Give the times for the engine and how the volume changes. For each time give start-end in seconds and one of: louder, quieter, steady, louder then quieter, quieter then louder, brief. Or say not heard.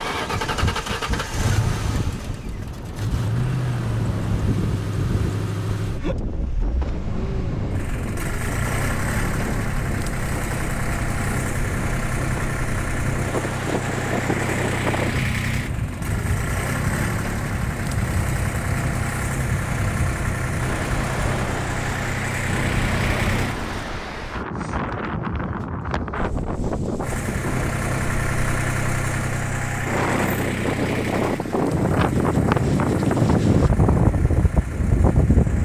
0.0-23.9 steady
27.0-35.6 quieter.